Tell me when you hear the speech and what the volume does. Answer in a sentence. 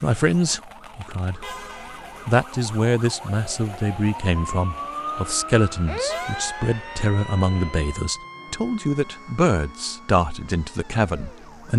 The speech can be heard briefly from 0.0 to 1.5 s; and from 2.2 to 11.7 s, at a steady volume.